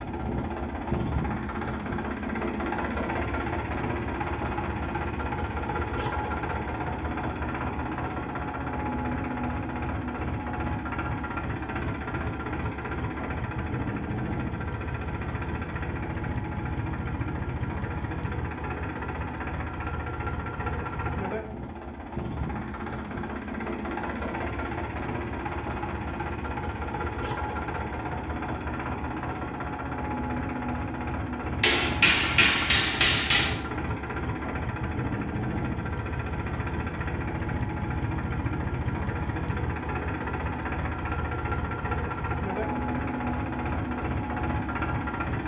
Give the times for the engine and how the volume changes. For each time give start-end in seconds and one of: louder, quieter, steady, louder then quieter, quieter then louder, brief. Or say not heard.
0.0-45.4 steady.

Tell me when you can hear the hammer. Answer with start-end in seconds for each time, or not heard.
31.6-33.6.